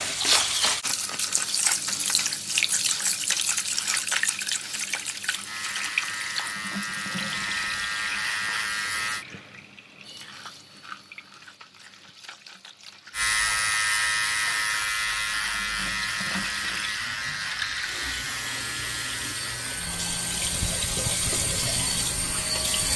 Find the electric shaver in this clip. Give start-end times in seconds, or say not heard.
5.5-9.2, 13.1-22.9.